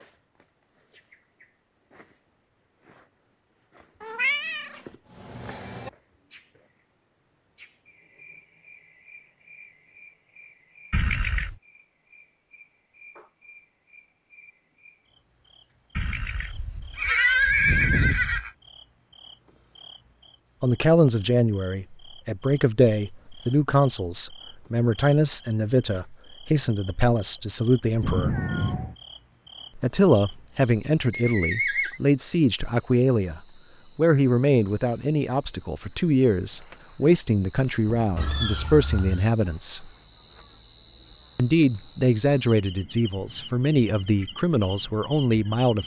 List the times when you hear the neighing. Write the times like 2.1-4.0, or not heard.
10.9-11.6, 15.9-18.5, 31.1-32.0.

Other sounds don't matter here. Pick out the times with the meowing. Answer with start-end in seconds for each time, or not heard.
4.0-5.9, 28.0-28.9, 38.1-39.2.